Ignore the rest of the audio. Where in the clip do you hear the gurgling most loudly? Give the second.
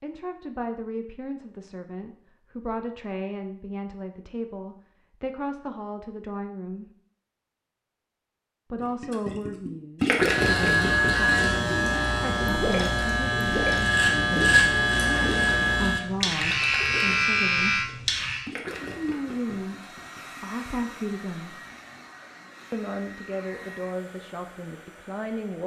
10 s.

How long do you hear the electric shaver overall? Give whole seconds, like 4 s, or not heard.
8 s.